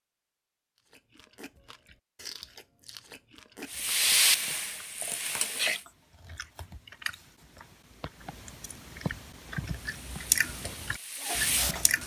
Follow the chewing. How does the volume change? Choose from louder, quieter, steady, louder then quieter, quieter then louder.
louder.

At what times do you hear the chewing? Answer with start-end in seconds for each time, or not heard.
0.9-12.0.